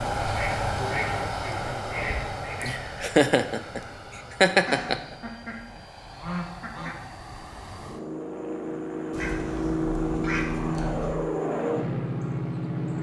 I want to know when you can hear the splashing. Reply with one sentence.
You can't hear the splashing here.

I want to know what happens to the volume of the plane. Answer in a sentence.
The loudness of the plane goes down, then up.